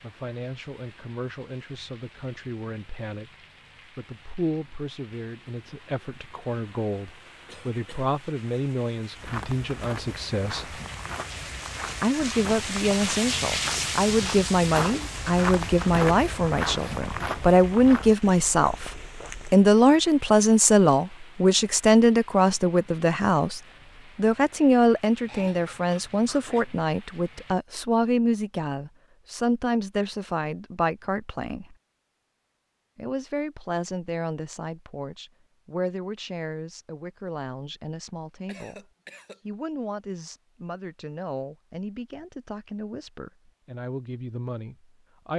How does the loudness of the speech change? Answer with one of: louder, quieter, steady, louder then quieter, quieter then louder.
louder then quieter.